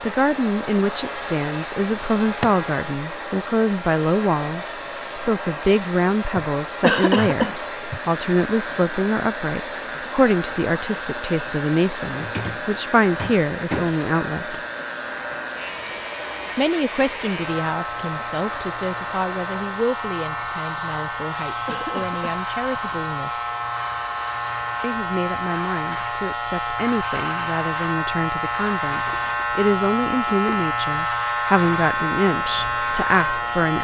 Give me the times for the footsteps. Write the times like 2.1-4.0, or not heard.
not heard.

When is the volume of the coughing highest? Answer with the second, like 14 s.
7 s.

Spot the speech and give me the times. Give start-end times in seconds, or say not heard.
0.0-14.6, 16.6-23.4, 24.8-33.7.